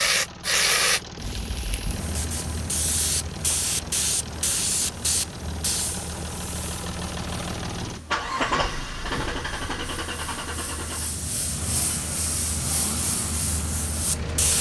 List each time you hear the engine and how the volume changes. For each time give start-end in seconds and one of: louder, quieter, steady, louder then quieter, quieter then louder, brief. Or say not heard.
0.0-14.5 louder then quieter.